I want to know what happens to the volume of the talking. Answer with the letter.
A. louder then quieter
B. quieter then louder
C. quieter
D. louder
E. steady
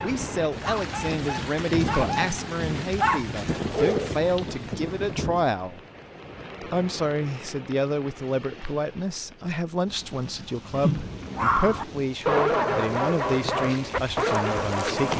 E.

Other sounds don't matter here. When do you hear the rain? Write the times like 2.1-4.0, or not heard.
0.0-15.1.